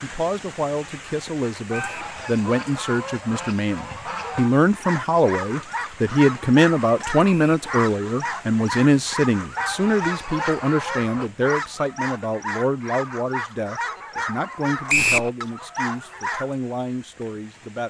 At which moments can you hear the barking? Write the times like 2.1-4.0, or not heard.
4.6-16.5.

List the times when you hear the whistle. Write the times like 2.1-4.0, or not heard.
1.7-2.1, 7.2-7.7, 14.8-15.3.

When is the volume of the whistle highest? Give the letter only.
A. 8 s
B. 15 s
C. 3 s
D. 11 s
B.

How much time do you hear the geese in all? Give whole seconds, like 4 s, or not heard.
5 s.